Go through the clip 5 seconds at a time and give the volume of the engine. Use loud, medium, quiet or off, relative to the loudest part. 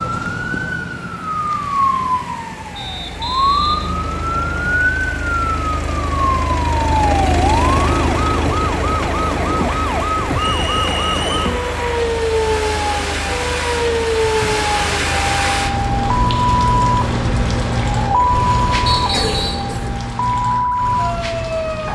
medium, loud, medium, medium, off.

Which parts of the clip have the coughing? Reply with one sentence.
You can hear the coughing from 19.1 to 20.1 s.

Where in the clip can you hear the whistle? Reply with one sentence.
You can hear the whistle from 2.8 to 4.8 s, from 10.3 to 11.6 s and from 18.9 to 19.7 s.